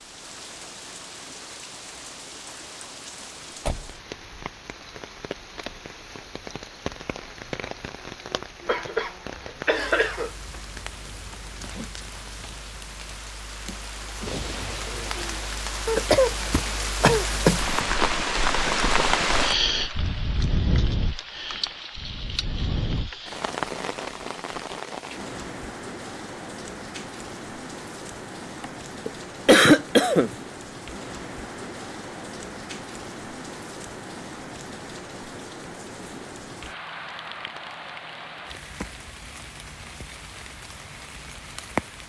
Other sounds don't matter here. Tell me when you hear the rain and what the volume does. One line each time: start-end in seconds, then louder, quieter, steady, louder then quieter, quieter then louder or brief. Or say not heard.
0.0-42.0 louder then quieter.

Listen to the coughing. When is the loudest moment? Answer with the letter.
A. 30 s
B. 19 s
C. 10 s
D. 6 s
A.